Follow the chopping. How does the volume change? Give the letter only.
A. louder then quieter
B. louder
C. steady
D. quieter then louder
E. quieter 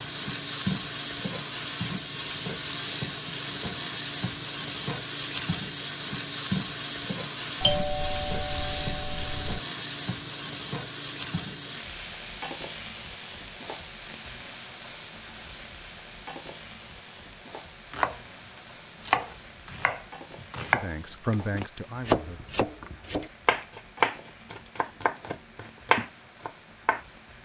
C.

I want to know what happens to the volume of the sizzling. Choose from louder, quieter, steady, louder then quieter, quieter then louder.
quieter.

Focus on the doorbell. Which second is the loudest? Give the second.
8 s.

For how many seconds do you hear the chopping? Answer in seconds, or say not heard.
9 s.